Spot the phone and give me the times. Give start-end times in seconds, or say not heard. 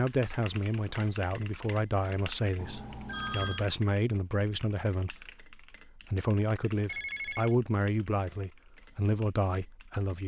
2.5-3.6, 6.8-7.5.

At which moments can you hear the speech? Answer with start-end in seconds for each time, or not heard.
0.0-10.2.